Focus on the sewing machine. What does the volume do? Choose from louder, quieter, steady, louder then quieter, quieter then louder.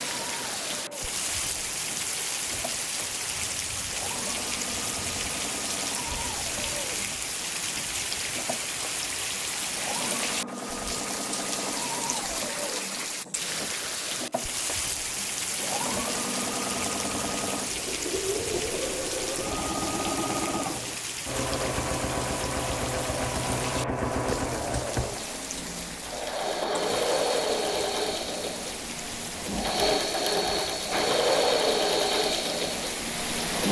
louder.